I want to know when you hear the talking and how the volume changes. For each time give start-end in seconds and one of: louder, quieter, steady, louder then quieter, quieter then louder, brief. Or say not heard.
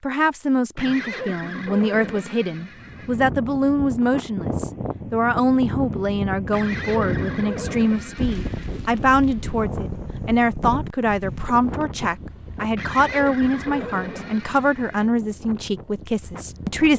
0.0-16.9 steady.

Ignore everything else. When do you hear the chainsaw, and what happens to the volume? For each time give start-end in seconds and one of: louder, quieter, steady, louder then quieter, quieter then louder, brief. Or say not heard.
not heard.